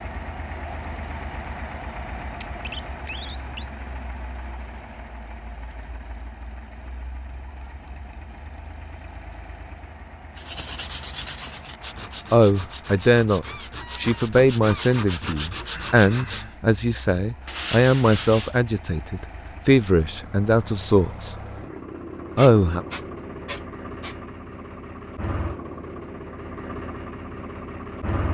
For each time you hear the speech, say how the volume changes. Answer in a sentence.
You can hear the speech from 12.3 to 21.4 s, at a steady volume; and briefly from 22.4 to 22.8 s.